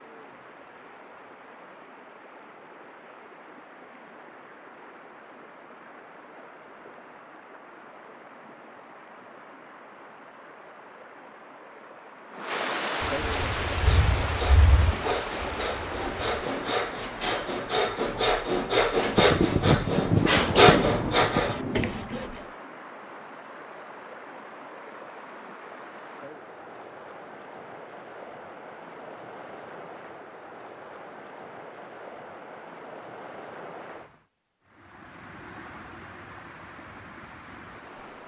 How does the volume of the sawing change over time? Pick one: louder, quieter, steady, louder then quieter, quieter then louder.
louder.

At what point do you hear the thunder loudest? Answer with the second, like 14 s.
20 s.